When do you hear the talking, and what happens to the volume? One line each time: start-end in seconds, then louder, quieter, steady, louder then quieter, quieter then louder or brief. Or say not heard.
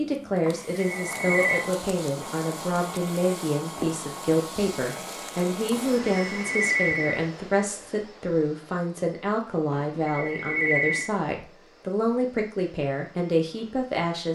0.0-14.3 steady.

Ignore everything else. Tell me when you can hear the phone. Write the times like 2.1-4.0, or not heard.
0.5-1.6, 5.7-7.2, 9.7-11.1.